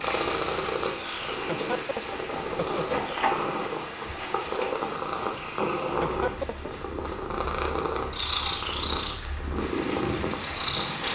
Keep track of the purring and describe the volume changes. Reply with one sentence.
The volume of the purring stays about the same.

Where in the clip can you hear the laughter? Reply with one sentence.
You can hear the laughter from 1.4 to 3.2 s and from 5.8 to 6.7 s.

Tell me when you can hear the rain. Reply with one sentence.
The rain can be heard from 0.0 to 11.0 s.